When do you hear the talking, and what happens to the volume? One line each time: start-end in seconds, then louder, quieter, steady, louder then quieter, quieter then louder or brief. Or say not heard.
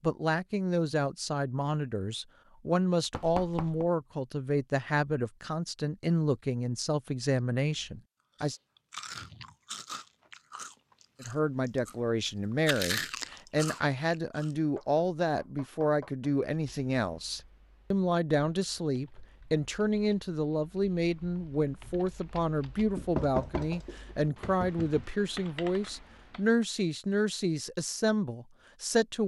0.0-8.6 steady
11.2-29.2 steady.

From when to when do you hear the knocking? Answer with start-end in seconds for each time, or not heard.
3.1-3.9, 14.8-16.2, 22.9-25.1.